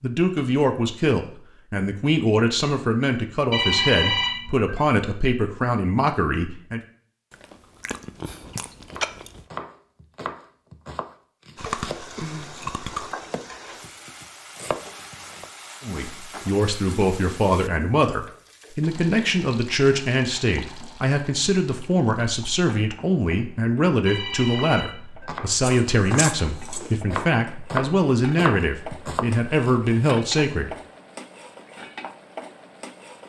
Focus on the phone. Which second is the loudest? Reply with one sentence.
The volume of the phone peaks at 4 seconds.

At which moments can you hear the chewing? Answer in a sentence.
You can hear the chewing from 7.3 to 9.4 s, from 11.6 to 13.2 s and from 25.6 to 26.9 s.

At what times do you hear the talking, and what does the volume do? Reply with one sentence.
The talking can be heard from 0.0 to 6.8 s, at a steady volume; and from 15.8 to 30.8 s, at a steady volume.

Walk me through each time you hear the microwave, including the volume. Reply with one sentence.
You can't hear the microwave here.